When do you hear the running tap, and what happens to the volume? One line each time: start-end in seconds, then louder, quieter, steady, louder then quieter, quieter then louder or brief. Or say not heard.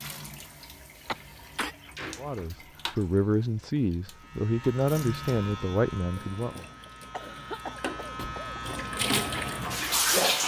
0.0-10.4 louder.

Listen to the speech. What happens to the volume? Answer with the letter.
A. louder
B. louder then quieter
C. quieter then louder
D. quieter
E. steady
E.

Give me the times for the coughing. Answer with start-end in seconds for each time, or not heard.
1.1-1.8, 6.8-8.8.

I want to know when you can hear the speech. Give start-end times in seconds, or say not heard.
2.1-6.7.